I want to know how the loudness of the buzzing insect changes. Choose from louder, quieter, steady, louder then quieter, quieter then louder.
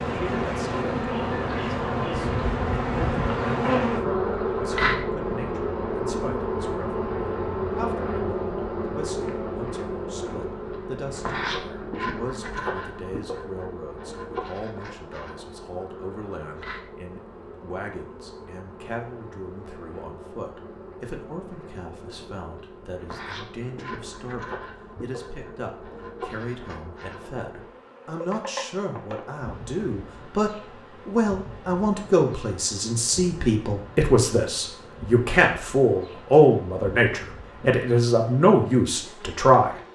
quieter.